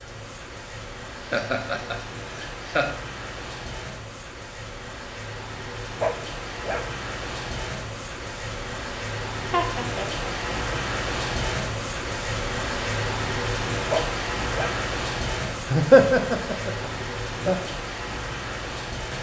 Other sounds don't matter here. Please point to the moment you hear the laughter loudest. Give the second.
16 s.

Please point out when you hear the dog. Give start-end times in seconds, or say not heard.
6.0-6.8, 13.9-14.8.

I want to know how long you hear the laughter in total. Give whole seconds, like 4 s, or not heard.
5 s.